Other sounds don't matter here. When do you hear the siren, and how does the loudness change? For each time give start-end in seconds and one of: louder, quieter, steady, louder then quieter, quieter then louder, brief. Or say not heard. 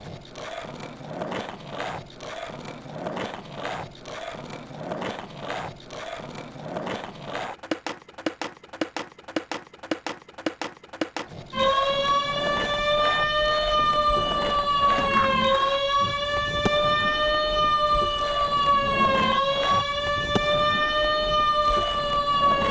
11.5-22.6 steady.